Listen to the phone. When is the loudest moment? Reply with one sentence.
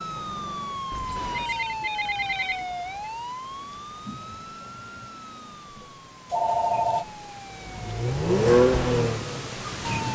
The volume of the phone peaks at 7 seconds.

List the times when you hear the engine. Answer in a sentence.
The engine can be heard from 7.7 to 10.0 s.